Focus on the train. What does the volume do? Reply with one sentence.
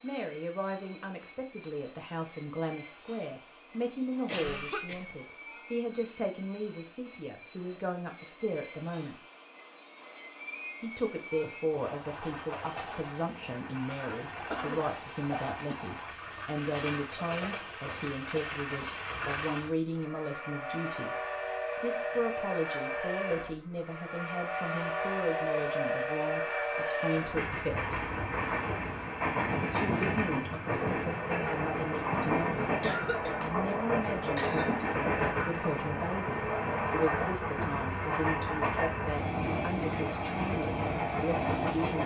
The loudness of the train goes up.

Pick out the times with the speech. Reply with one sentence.
The speech can be heard from 0.0 to 9.2 s, from 10.8 to 21.1 s, from 21.8 to 27.9 s and from 29.7 to 42.0 s.